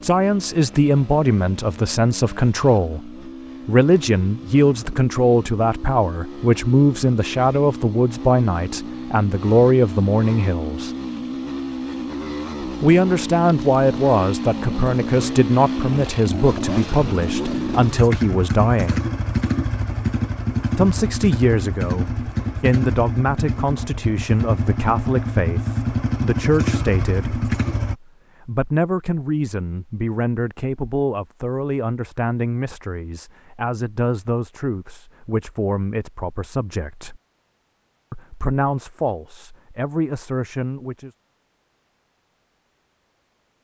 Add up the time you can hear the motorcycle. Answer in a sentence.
The motorcycle can be heard for 28 seconds in total.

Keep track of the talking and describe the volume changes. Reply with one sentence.
The volume of the talking goes down.